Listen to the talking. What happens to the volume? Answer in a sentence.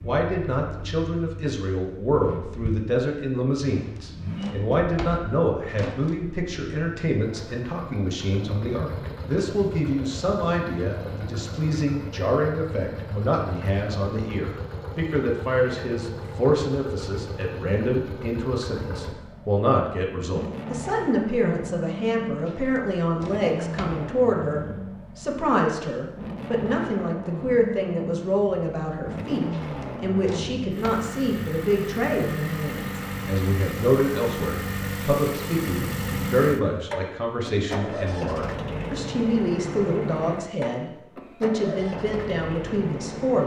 The loudness of the talking stays about the same.